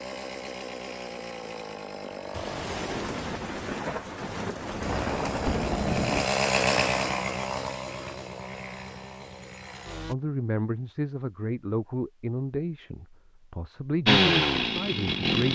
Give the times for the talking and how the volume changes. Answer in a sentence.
The talking can be heard from 10.1 to 15.5 s, at a steady volume.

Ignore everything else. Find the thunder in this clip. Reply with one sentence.
You can hear the thunder from 2.3 to 6.3 s.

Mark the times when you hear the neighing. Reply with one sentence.
You can't hear the neighing here.